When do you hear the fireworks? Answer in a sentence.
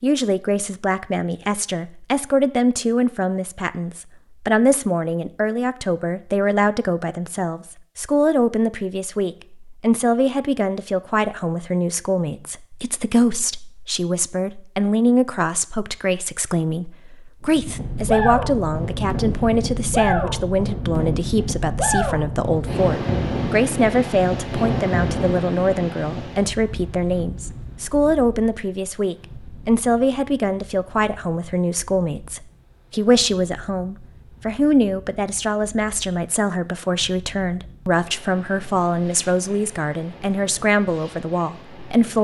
You can't hear the fireworks here.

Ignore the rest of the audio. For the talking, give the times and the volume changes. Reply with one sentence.
You can hear the talking from 0.0 to 42.1 s, at a steady volume.